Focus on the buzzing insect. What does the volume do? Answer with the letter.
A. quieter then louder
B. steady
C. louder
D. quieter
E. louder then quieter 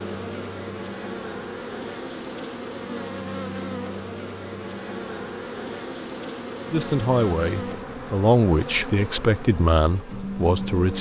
B.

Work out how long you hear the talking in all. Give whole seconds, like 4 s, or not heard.
4 s.